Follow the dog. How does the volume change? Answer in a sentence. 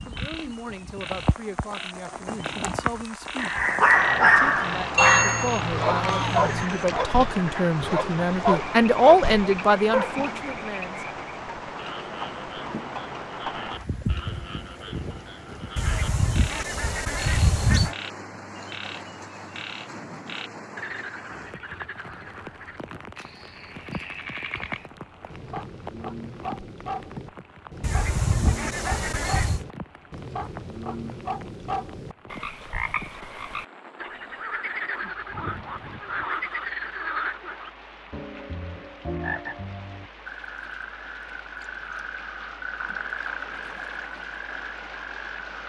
The volume of the dog goes down.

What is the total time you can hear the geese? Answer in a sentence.
The geese can be heard for 7 seconds in total.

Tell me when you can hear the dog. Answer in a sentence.
The dog can be heard from 3.4 to 10.2 s.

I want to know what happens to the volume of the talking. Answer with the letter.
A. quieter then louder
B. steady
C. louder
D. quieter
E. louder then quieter
C.